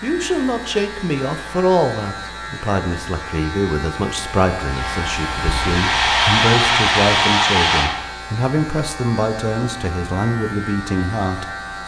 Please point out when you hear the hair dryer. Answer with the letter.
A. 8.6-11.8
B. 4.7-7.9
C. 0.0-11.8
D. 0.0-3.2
B.